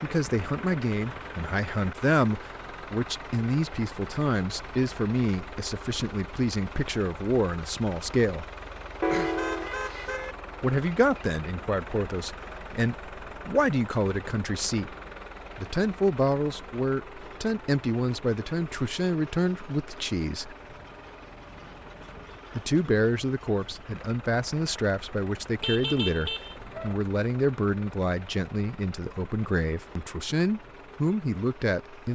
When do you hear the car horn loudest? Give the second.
9 s.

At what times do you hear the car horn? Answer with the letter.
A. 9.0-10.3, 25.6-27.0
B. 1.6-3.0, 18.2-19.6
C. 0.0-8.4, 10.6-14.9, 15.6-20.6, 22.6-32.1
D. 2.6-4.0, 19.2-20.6
A.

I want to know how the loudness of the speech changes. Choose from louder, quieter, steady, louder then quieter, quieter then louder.
steady.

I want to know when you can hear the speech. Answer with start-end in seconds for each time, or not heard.
0.0-8.4, 10.6-14.9, 15.6-20.6, 22.6-32.1.